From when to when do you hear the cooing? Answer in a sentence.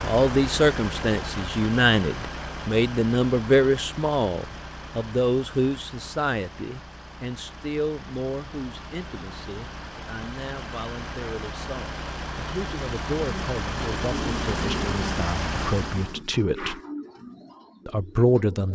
The cooing can be heard from 13.2 to 18.6 s.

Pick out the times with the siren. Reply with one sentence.
You can't hear the siren here.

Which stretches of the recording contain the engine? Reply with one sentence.
You can hear the engine from 0.0 to 16.2 s.